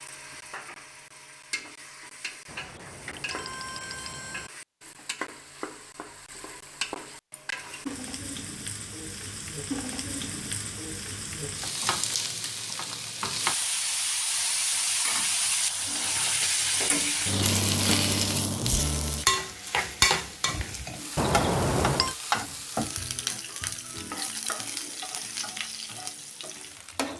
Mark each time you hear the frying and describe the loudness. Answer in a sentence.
You can hear the frying from 0.0 to 27.1 s, getting louder then quieter.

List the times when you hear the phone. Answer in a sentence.
You can hear the phone from 2.5 to 4.5 s and from 21.1 to 22.1 s.